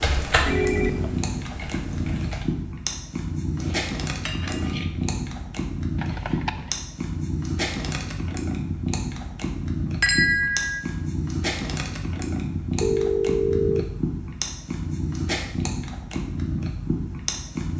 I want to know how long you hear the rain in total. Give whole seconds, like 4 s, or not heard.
not heard.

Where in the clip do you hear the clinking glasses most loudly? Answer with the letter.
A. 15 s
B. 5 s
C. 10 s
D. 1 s
C.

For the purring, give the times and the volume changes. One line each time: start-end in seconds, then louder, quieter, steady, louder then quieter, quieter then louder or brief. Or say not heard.
0.0-17.7 steady.